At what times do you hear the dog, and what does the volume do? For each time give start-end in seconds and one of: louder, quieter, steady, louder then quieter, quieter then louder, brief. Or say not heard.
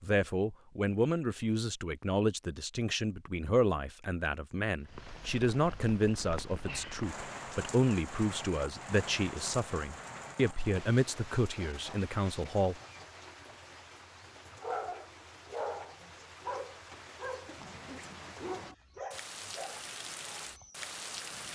14.6-21.5 quieter.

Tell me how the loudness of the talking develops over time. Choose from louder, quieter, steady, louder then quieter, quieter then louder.
steady.